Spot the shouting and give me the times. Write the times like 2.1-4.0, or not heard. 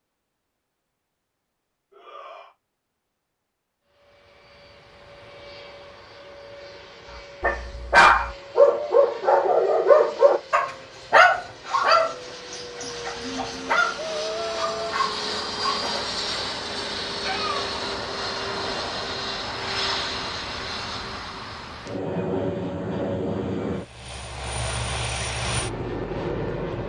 1.9-2.5, 13.9-14.9.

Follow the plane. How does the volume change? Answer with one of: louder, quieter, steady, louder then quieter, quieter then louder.
louder.